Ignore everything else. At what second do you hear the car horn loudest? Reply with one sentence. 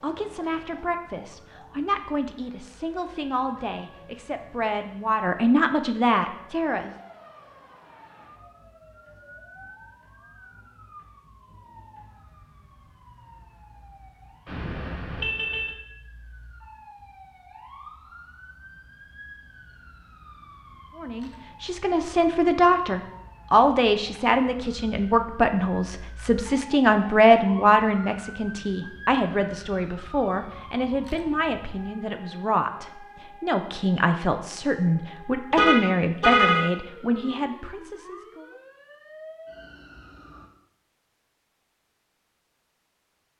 The volume of the car horn peaks at 36 seconds.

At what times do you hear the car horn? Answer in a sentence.
You can hear the car horn from 14.4 to 15.8 s and from 35.5 to 36.6 s.